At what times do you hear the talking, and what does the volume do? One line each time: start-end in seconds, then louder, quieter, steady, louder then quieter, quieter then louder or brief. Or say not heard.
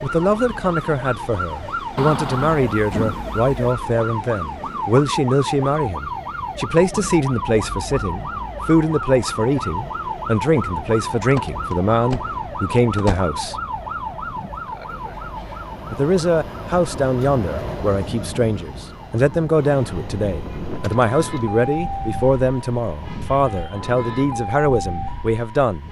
0.0-13.6 steady
15.9-25.8 steady.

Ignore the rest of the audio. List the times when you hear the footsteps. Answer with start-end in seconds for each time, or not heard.
not heard.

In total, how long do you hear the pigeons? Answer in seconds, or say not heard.
not heard.